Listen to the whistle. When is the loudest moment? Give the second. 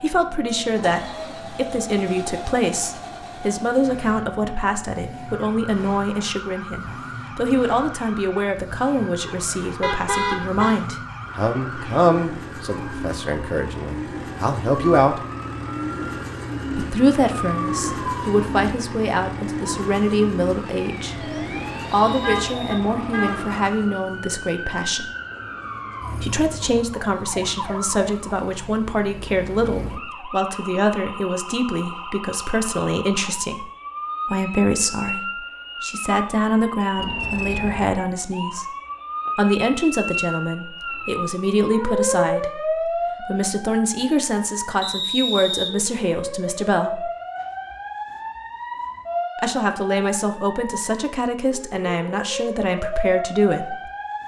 45 s.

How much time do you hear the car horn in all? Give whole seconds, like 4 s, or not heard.
3 s.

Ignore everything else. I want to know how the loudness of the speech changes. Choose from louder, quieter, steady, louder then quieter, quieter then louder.
steady.